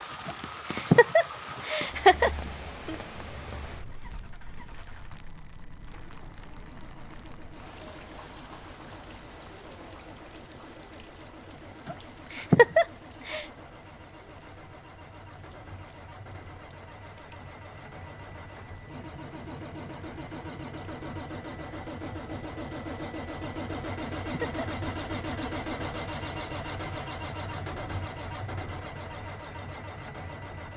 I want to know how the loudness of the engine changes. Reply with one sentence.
The volume of the engine goes up.